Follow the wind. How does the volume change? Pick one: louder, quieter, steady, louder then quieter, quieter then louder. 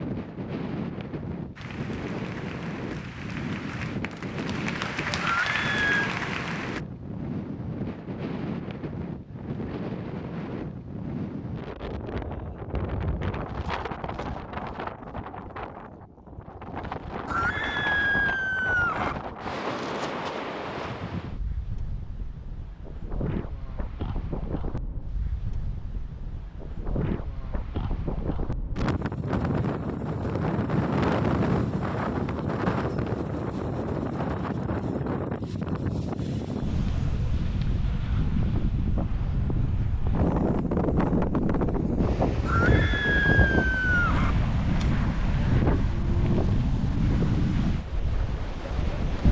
louder.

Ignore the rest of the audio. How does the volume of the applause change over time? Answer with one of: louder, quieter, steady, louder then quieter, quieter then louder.
louder.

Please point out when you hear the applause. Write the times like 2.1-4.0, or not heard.
1.6-6.8.